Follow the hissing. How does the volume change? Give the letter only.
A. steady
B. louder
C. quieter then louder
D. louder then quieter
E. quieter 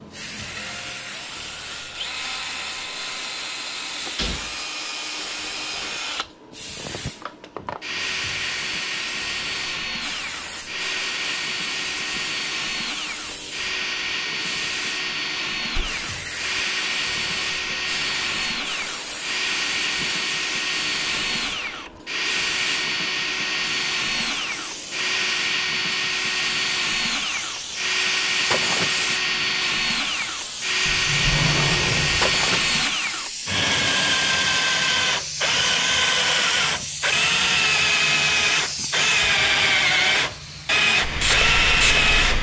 B.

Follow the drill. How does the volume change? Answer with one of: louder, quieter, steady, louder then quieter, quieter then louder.
louder.